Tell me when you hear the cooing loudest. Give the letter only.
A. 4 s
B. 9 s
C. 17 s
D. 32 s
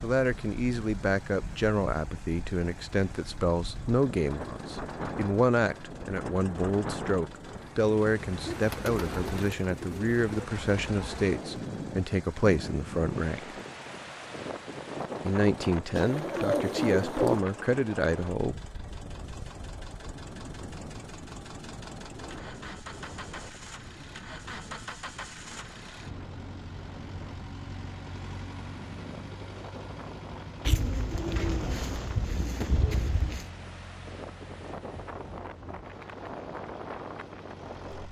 C.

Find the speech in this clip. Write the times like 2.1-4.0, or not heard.
0.0-13.6, 15.2-18.6.